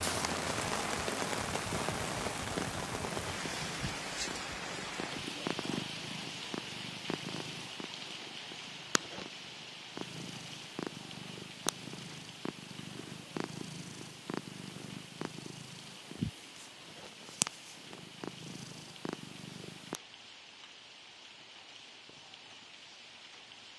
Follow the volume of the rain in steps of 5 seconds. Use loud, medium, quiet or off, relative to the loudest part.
loud, medium, quiet, quiet, quiet.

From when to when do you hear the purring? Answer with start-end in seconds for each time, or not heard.
0.0-20.0.